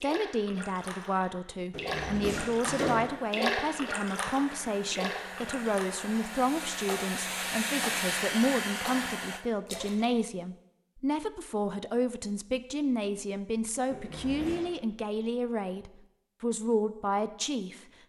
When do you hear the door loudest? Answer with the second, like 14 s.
3 s.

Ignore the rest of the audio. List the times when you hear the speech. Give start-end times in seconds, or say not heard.
0.0-17.8.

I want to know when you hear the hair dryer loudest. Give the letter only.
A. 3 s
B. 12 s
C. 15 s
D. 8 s
D.